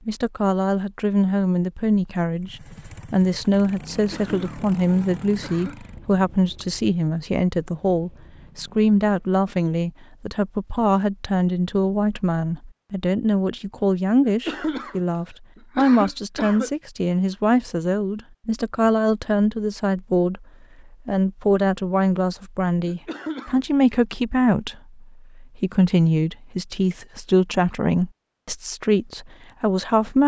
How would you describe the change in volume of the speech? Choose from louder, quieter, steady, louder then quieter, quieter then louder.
steady.